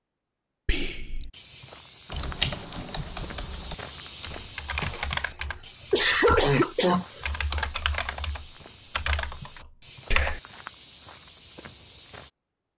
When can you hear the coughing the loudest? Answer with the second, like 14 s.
6 s.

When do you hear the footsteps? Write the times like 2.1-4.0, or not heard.
1.3-12.3.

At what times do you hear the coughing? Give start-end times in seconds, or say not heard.
4.8-7.5.